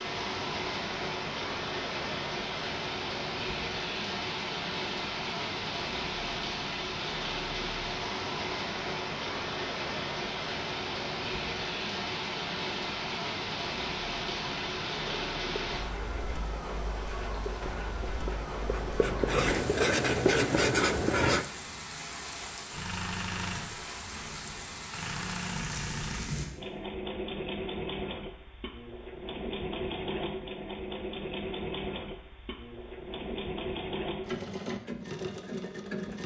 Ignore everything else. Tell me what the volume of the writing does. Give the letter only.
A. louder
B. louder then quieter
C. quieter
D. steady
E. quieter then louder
A.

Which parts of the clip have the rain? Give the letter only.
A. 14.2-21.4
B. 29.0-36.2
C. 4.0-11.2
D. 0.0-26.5
D.